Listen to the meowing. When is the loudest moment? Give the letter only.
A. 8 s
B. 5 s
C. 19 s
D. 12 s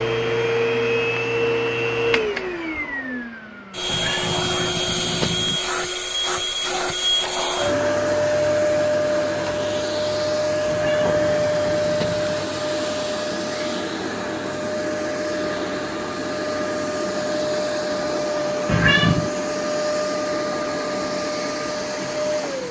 C.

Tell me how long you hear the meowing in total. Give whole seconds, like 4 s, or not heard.
4 s.